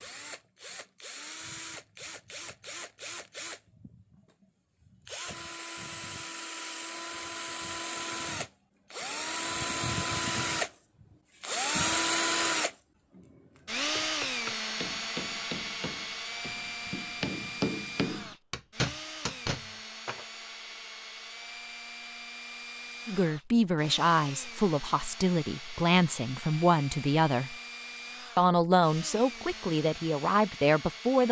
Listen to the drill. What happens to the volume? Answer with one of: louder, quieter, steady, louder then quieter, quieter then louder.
louder then quieter.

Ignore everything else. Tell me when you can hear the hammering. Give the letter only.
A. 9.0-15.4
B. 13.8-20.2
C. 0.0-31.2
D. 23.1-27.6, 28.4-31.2
B.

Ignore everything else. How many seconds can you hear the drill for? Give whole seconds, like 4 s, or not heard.
31 s.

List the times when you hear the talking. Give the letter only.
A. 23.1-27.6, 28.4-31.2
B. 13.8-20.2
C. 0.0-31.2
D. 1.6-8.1
A.